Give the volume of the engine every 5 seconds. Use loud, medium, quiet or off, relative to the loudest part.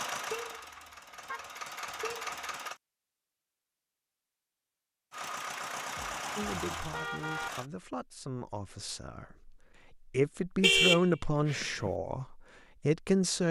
loud, loud, off.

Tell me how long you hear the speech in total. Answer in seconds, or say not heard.
7 s.